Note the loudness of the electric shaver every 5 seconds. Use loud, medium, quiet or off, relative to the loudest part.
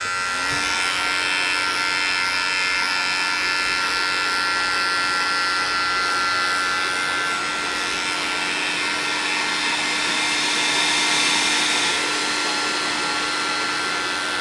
loud, loud, medium.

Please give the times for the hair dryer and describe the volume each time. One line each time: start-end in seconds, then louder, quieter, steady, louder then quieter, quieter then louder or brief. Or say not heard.
0.1-14.3 louder.